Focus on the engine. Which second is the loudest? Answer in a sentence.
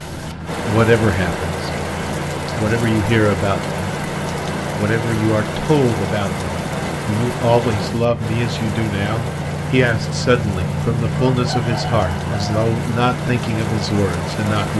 The volume of the engine peaks at 11 seconds.